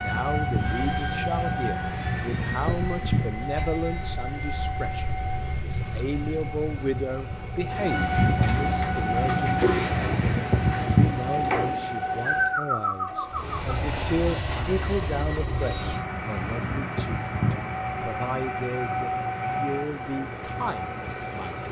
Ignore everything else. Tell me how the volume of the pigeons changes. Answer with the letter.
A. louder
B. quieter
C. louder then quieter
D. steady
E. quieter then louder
E.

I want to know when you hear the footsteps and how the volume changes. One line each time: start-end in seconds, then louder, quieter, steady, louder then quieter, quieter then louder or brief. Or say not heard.
not heard.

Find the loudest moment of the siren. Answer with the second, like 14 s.
11 s.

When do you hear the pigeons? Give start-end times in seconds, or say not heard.
7.7-13.8.